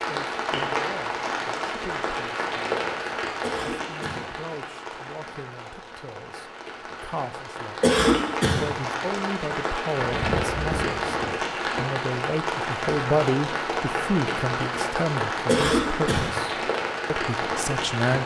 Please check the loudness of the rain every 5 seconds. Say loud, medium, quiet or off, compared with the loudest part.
loud, medium, loud, loud.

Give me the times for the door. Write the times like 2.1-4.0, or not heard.
9.9-11.4.